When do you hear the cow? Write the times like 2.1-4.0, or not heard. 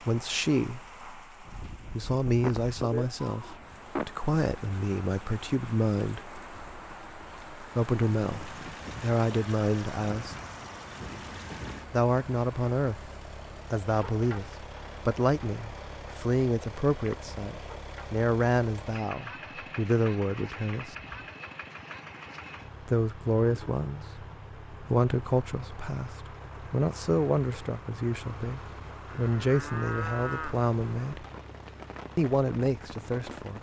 2.4-4.0, 29.1-30.6.